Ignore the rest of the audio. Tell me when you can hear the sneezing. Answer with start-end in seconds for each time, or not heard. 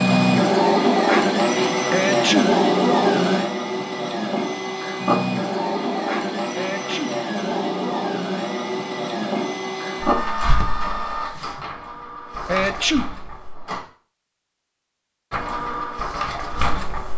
1.9-2.5, 6.5-7.2, 12.4-13.1.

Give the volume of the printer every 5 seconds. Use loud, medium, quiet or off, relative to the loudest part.
loud, medium, medium, medium.